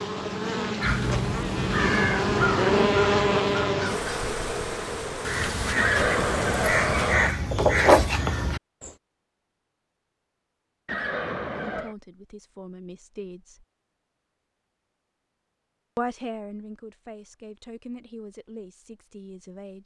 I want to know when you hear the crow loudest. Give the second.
8 s.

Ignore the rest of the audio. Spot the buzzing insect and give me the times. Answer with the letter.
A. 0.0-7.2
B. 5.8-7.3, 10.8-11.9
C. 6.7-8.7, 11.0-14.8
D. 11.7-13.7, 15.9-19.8
A.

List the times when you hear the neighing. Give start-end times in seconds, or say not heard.
5.8-7.3, 10.8-11.9.